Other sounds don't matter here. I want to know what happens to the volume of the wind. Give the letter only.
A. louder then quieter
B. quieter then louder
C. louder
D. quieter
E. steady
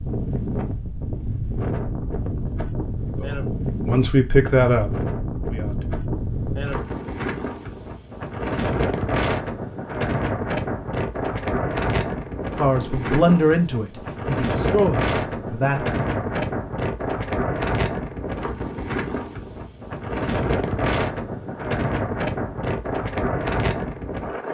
E.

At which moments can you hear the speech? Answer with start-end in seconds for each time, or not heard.
3.0-5.8, 12.6-15.8.